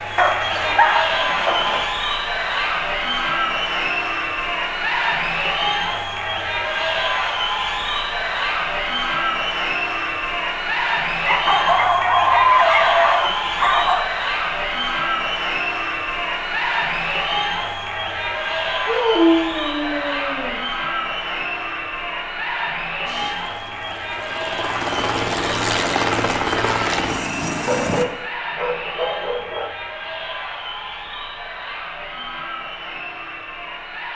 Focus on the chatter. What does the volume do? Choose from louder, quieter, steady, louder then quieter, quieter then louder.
quieter.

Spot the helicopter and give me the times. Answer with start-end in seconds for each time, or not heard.
23.1-28.1.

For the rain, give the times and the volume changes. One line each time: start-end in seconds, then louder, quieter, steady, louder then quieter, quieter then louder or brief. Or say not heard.
not heard.